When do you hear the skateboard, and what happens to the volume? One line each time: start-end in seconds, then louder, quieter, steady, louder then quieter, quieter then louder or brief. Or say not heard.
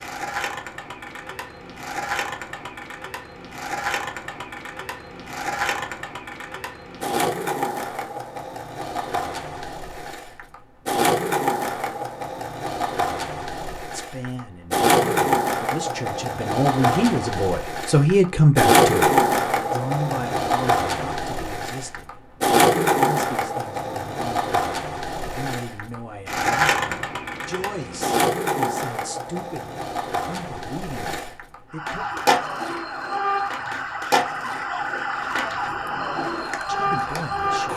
0.0-37.7 louder then quieter.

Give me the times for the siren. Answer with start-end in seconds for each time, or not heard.
31.7-37.7.